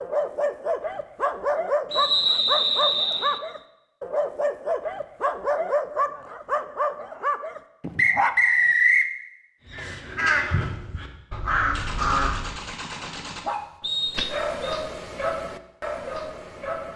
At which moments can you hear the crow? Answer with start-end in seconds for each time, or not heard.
9.7-12.6.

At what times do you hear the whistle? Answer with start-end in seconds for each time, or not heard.
1.9-3.4, 8.0-9.1, 13.8-14.8.